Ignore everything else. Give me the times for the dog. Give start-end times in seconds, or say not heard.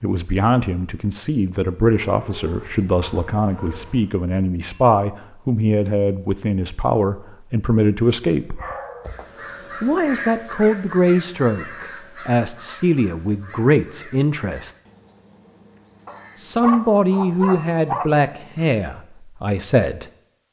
1.9-4.2, 8.4-9.6, 16.1-18.1.